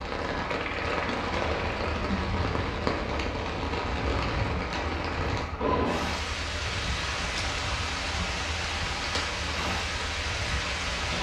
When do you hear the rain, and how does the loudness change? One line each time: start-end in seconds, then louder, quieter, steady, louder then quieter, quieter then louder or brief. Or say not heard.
0.0-11.1 steady.